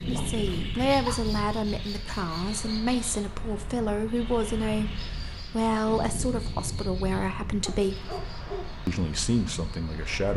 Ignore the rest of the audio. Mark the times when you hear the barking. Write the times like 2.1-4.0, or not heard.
0.3-1.2, 7.7-8.8.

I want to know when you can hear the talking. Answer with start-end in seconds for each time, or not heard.
0.1-8.2, 8.8-10.3.